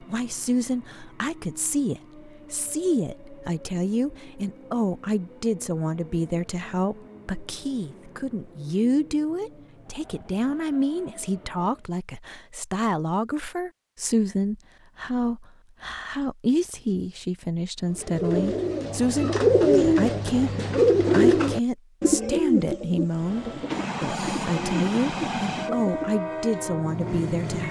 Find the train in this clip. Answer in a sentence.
The train can be heard from 0.0 to 11.9 s and from 23.1 to 27.6 s.